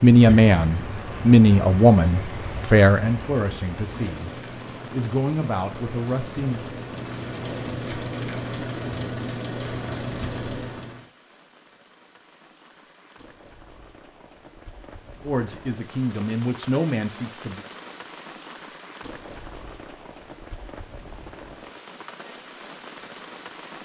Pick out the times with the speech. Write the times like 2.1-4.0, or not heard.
0.0-4.3, 4.9-6.6, 15.2-17.6.